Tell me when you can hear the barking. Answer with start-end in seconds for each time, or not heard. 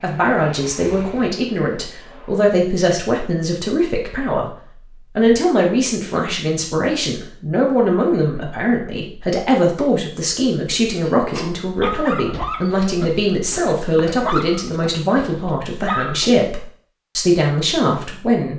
11.0-16.3.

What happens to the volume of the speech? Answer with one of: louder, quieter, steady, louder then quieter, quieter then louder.
steady.